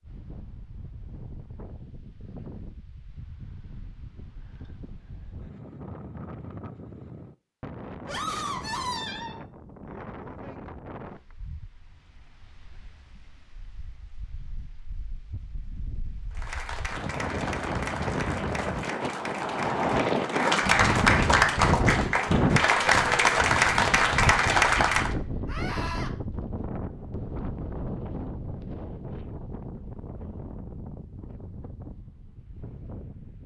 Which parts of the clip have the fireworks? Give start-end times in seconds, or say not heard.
not heard.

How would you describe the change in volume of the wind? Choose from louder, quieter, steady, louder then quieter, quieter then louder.
louder then quieter.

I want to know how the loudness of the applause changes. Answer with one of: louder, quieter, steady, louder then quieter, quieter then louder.
louder.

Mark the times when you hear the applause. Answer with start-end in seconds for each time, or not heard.
16.3-25.1.